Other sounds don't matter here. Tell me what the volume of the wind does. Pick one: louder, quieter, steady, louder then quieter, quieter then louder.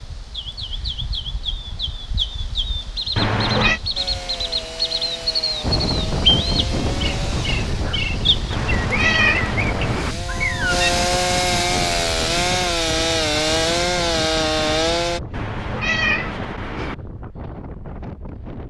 quieter.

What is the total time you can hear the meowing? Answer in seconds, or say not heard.
4 s.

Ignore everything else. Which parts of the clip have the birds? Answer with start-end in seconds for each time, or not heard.
0.0-10.9.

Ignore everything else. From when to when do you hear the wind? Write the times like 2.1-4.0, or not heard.
5.6-18.6.